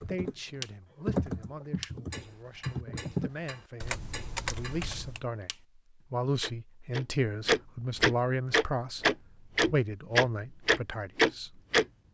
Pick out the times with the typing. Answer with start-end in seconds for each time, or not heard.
0.0-5.2.